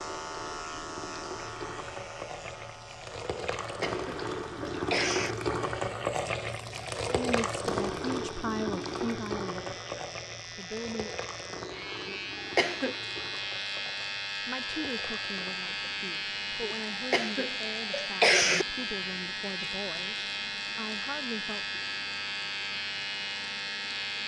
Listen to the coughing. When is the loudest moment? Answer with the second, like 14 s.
18 s.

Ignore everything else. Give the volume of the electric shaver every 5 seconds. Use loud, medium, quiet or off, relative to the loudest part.
medium, quiet, loud, loud, loud.